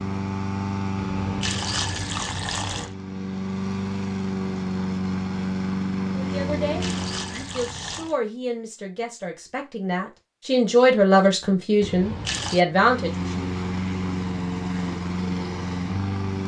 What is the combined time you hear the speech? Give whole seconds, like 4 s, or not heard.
7 s.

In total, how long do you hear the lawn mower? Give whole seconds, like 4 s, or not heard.
11 s.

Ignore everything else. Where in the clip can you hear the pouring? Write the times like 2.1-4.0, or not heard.
0.9-3.0, 6.6-8.2, 11.8-12.6.